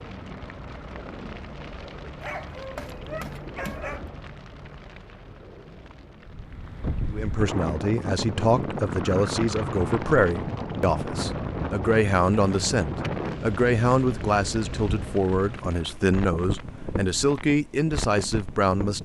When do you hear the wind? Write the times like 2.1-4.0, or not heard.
6.2-19.0.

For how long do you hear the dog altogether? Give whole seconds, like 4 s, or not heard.
2 s.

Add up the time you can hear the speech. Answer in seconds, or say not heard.
12 s.